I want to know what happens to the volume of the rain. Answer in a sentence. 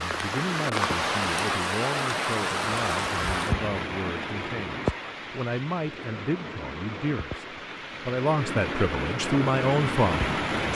The volume of the rain goes down, then up.